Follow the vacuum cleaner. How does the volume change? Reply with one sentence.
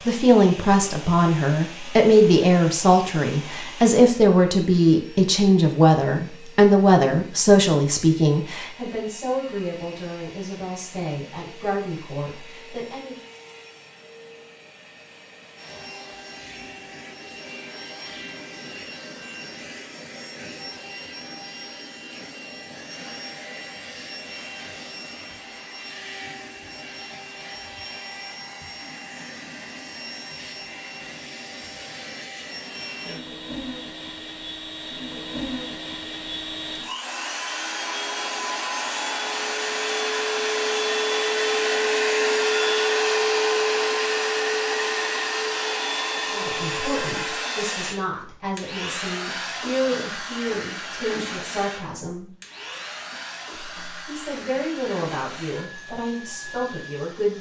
The volume of the vacuum cleaner goes up, then down.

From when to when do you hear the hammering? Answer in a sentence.
You can't hear the hammering here.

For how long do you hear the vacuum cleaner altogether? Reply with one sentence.
You can hear the vacuum cleaner for 57 seconds altogether.